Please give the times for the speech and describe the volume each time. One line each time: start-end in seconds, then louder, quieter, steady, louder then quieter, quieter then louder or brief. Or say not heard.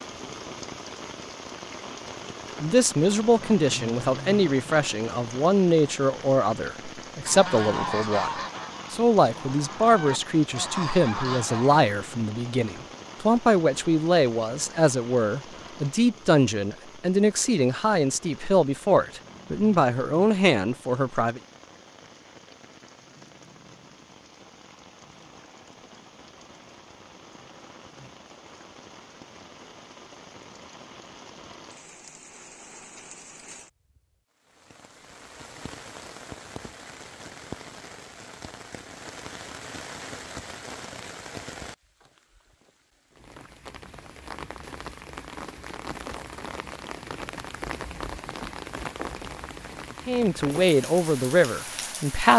2.6-21.4 steady
50.0-52.3 brief.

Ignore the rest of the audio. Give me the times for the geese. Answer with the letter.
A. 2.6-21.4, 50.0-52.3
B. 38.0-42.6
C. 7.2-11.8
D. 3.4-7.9
C.